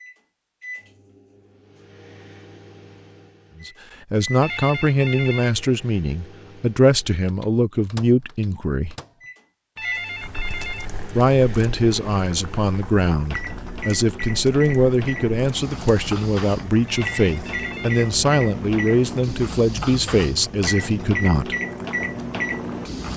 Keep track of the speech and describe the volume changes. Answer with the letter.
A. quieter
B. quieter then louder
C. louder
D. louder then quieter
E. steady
E.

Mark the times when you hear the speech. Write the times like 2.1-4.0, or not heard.
3.6-8.9, 11.2-21.6.